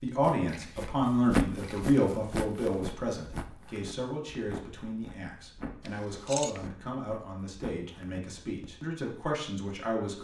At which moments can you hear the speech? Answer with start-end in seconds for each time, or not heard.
0.0-10.1.